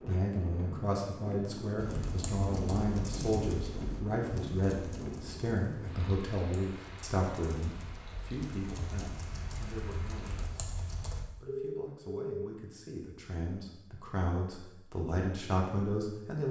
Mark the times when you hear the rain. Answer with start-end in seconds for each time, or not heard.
0.0-10.4.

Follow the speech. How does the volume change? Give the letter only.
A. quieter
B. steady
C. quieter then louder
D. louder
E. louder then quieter
C.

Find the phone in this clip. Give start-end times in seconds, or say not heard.
11.4-12.5.